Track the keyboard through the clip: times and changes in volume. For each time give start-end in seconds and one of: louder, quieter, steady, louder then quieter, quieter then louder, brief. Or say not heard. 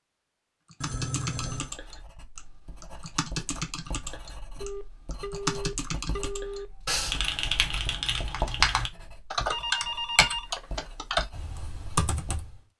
0.7-12.6 louder.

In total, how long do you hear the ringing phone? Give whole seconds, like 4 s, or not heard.
4 s.